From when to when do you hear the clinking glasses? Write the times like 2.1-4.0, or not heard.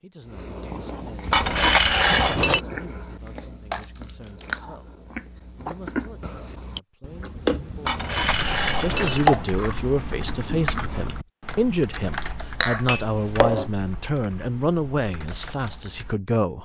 1.3-2.6, 7.8-9.3, 12.6-13.7.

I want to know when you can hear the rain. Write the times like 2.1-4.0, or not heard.
not heard.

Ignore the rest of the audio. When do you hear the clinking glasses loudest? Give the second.
2 s.